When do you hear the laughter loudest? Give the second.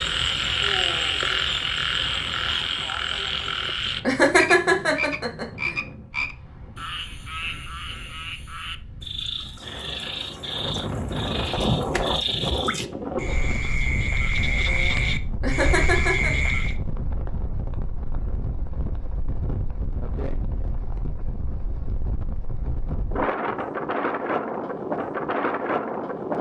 4 s.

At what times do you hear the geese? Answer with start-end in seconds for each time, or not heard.
not heard.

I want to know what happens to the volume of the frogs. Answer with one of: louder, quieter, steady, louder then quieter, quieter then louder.
quieter then louder.